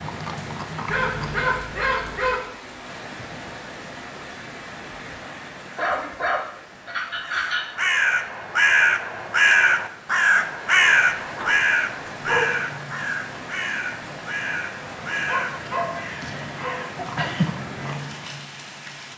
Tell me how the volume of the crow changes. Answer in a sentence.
The volume of the crow goes down.